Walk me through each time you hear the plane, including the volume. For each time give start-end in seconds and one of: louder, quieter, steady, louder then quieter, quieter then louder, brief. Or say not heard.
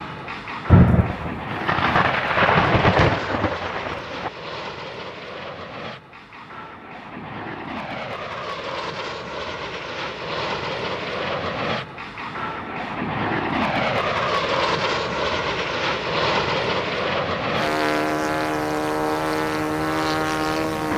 0.0-20.9 louder.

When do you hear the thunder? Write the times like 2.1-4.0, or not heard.
0.7-4.3.